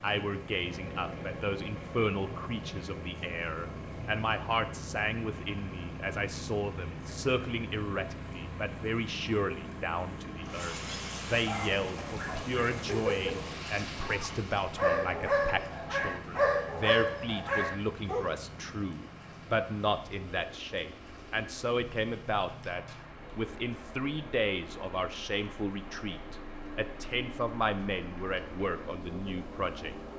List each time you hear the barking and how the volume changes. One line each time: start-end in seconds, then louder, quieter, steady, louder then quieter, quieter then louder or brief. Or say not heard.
11.4-18.2 louder.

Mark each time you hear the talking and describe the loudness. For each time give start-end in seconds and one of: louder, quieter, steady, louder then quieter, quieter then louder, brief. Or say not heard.
0.0-29.9 steady.